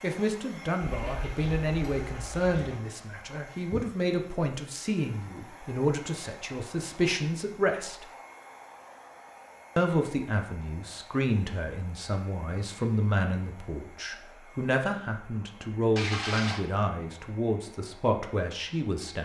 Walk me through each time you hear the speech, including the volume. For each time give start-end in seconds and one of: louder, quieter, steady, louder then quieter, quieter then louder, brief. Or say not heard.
0.0-8.1 steady
9.8-19.1 steady.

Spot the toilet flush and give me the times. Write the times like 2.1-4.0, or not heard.
0.8-2.8, 15.9-16.6.